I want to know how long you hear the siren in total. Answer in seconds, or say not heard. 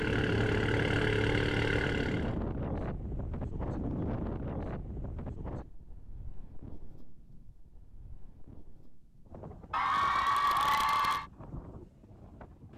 not heard.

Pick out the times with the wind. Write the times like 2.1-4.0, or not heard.
0.0-12.7.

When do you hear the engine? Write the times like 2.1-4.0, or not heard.
0.0-2.4.